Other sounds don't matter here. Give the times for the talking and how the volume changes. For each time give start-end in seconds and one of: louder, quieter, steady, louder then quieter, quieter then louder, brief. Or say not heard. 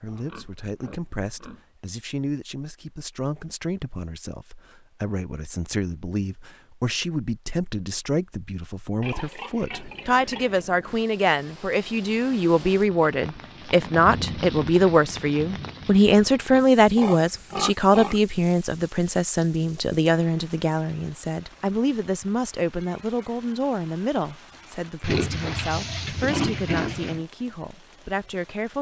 0.0-28.7 louder then quieter.